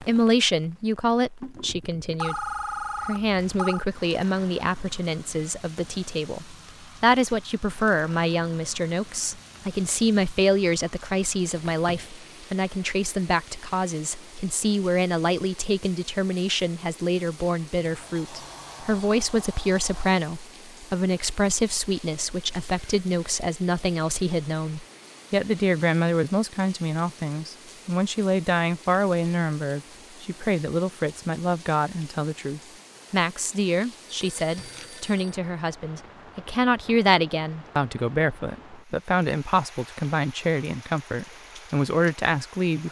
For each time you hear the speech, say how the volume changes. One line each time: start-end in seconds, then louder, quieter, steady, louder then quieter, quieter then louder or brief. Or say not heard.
0.0-2.5 brief
3.0-42.8 steady.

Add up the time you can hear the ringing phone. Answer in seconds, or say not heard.
3 s.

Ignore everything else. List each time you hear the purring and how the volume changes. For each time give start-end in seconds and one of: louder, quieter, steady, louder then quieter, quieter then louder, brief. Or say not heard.
not heard.